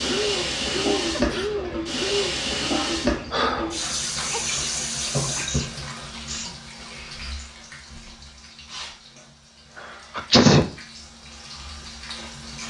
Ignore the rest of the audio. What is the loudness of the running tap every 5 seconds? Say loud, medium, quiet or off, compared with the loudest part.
loud, medium, quiet.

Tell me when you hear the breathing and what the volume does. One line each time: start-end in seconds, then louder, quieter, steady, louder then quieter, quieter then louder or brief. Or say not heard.
0.0-4.3 quieter then louder.